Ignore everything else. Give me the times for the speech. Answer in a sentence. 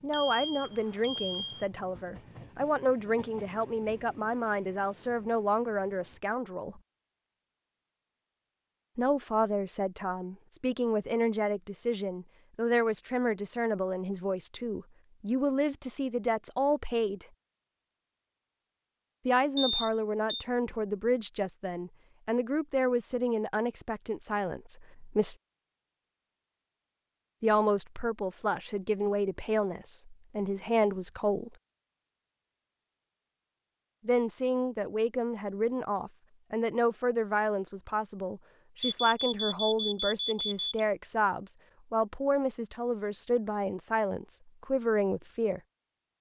You can hear the speech from 0.0 to 6.8 s, from 8.9 to 17.2 s, from 19.2 to 25.4 s, from 27.4 to 31.6 s and from 34.0 to 45.6 s.